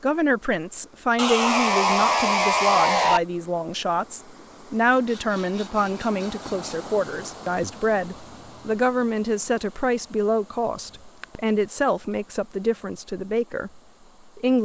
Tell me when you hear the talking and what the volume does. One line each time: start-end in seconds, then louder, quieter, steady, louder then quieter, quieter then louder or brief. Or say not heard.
0.0-14.5 steady.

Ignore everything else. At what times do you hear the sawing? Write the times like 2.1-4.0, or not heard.
1.1-3.2, 5.0-6.7, 10.9-11.4.